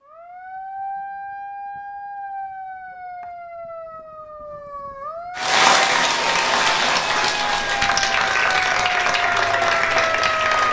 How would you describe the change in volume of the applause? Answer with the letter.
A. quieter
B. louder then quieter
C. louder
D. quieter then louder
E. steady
E.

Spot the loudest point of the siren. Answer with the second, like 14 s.
10 s.